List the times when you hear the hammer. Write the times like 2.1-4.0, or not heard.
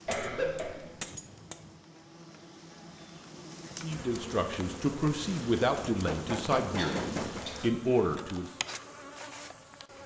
0.1-1.8, 5.8-7.5.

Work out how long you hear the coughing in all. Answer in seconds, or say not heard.
2 s.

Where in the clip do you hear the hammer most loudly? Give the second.
7 s.